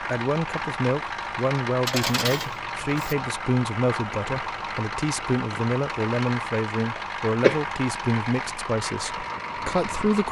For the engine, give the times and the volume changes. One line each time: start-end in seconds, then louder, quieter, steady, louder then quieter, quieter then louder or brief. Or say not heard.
0.0-10.2 steady.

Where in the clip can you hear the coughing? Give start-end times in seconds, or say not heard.
7.0-7.6.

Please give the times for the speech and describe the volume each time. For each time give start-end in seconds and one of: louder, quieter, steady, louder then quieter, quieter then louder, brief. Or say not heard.
0.0-10.2 steady.